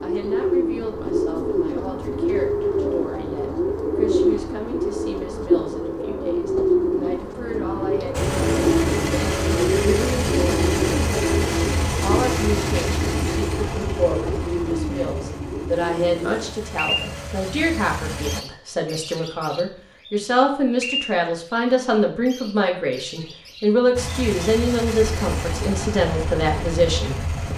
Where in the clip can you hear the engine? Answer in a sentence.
The engine can be heard from 8.1 to 18.4 s and from 23.9 to 27.5 s.